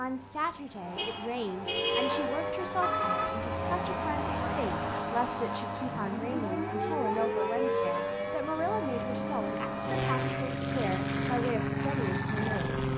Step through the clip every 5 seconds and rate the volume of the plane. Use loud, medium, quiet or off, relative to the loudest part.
medium, medium, loud.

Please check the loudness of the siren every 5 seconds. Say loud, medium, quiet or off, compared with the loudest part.
loud, loud, medium.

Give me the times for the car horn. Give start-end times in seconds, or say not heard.
0.9-3.5.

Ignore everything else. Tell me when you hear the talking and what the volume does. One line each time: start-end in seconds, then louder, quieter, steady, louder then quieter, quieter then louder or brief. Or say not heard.
0.0-12.8 steady.